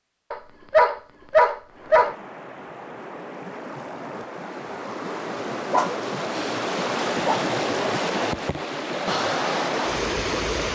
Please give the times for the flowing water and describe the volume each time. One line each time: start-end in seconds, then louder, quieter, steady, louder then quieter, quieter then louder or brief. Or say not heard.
1.6-10.6 louder.